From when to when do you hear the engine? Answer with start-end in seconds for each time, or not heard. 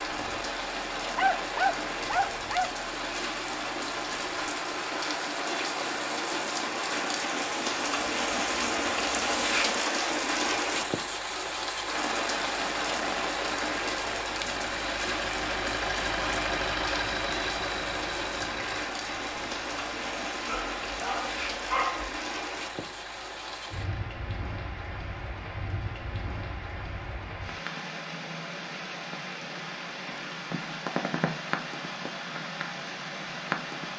0.0-24.0.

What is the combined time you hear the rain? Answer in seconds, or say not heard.
34 s.